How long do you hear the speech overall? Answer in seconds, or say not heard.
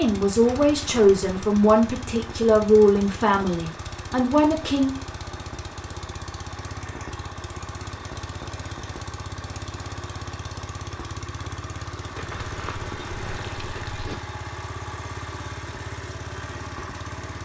5 s.